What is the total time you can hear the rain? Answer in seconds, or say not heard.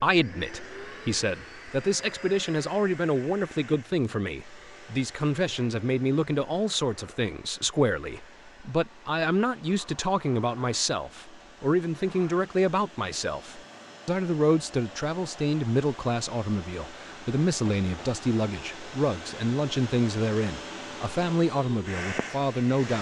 not heard.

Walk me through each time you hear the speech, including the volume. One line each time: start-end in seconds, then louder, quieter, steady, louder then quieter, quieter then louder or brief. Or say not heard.
0.0-22.9 steady.